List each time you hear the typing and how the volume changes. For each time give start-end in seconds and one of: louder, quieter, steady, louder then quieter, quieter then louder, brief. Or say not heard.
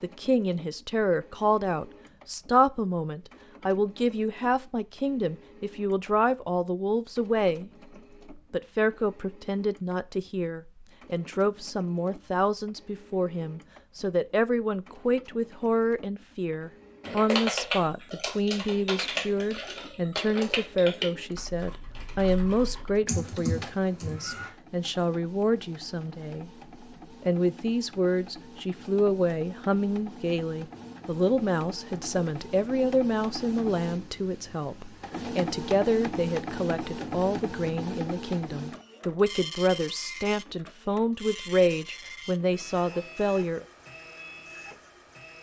17.0-24.5 quieter then louder.